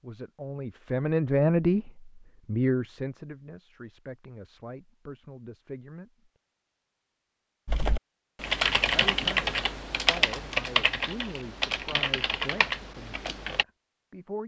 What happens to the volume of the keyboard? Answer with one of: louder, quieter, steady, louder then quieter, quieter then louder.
quieter.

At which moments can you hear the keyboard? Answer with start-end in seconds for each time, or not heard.
7.7-13.7.